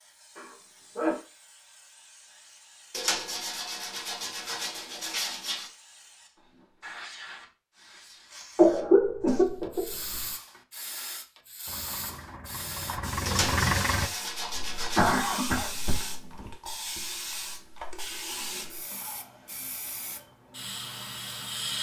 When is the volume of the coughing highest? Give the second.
9 s.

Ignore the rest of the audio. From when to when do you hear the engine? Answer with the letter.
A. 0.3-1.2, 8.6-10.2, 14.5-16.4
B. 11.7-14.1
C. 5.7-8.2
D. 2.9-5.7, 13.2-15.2
B.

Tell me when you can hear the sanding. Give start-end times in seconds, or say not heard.
2.9-5.7, 13.2-15.2.